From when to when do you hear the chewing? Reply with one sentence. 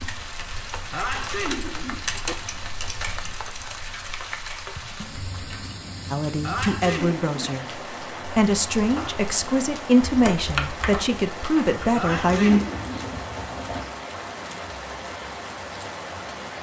The chewing can't be heard in this clip.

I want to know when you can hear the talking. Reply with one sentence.
The talking can be heard from 6.1 to 12.6 s.